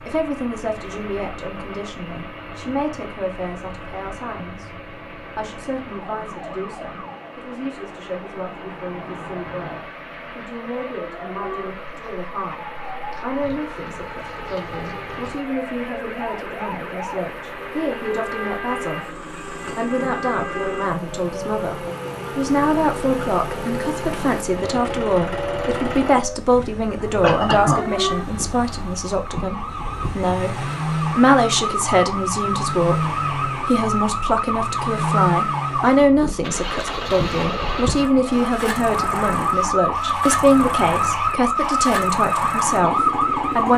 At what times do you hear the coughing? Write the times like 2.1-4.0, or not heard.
27.0-27.9.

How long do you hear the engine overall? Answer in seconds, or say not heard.
44 s.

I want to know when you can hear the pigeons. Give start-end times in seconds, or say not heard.
not heard.